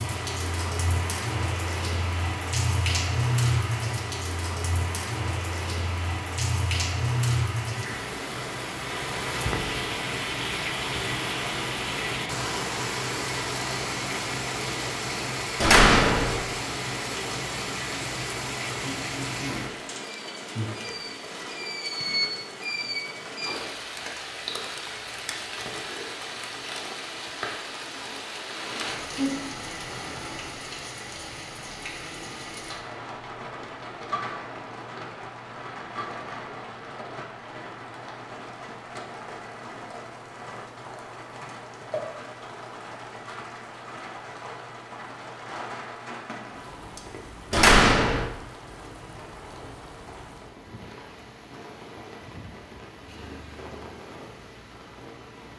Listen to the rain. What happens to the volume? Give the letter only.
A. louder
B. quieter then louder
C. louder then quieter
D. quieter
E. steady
D.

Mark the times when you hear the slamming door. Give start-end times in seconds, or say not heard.
15.6-16.4, 47.5-48.3.